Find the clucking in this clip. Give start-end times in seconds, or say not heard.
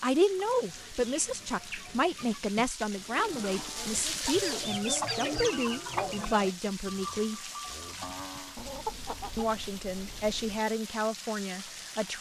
0.3-2.4, 4.2-6.3, 8.6-10.6.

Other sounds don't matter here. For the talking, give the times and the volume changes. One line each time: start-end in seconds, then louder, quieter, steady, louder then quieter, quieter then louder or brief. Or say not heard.
0.0-7.4 steady
9.3-12.1 brief.